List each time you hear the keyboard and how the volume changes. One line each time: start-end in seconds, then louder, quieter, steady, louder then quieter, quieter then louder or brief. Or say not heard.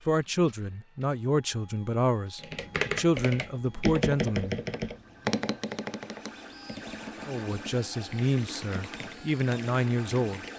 2.4-10.5 quieter.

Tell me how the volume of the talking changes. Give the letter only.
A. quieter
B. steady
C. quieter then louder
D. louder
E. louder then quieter
B.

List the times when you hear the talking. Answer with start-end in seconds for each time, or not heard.
0.1-4.5, 7.2-10.4.